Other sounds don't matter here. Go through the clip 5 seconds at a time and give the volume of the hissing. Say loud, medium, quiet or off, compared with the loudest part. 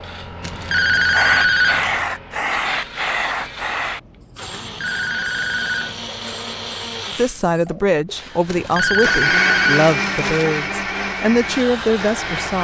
loud, quiet, medium.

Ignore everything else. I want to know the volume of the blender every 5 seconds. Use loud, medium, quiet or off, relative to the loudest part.
medium, loud, loud.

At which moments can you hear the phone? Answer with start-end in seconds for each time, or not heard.
0.4-1.9, 4.5-6.0, 8.4-10.5.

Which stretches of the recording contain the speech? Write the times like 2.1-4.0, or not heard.
7.2-12.5.